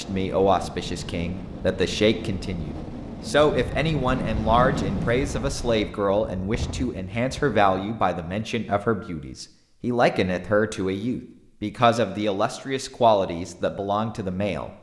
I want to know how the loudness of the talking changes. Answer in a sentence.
The volume of the talking stays about the same.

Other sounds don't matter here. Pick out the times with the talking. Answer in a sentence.
You can hear the talking from 0.0 to 14.7 s.